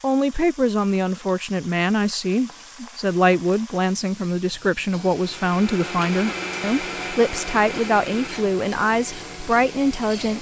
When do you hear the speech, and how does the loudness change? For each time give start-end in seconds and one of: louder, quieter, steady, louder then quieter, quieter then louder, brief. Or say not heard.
0.0-10.3 steady.